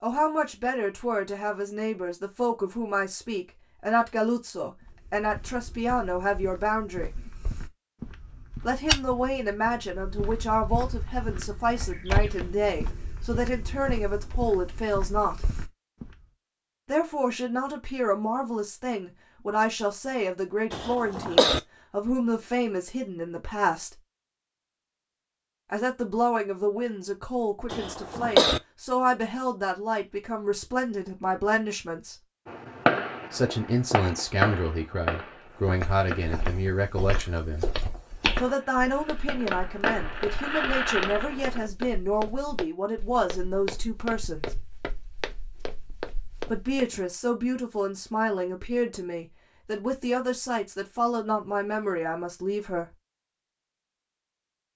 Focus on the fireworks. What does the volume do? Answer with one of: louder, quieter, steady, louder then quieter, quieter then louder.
quieter then louder.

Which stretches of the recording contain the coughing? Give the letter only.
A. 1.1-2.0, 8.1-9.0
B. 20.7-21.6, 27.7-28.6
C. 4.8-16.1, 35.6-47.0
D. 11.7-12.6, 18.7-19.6
B.